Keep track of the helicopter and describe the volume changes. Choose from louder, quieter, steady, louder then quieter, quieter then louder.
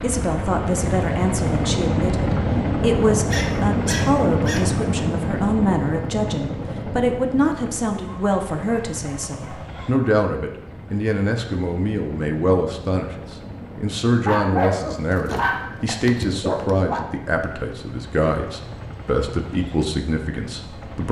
quieter.